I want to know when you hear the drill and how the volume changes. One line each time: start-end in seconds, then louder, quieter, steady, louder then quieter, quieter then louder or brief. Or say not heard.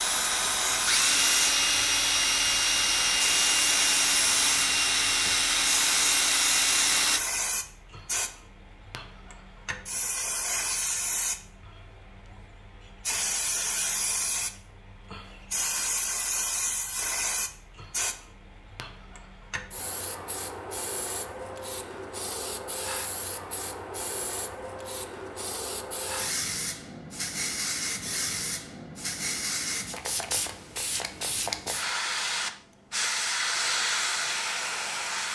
0.0-7.2 steady.